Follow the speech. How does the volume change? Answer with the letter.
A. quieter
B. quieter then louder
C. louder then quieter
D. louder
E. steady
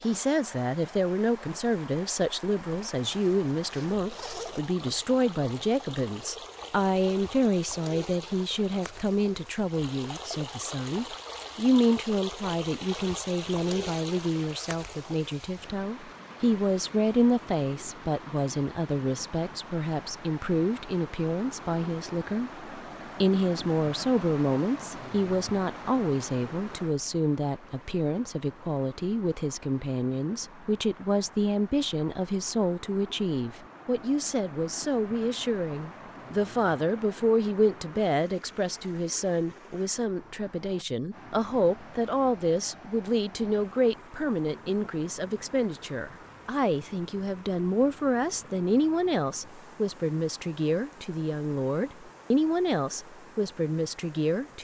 E.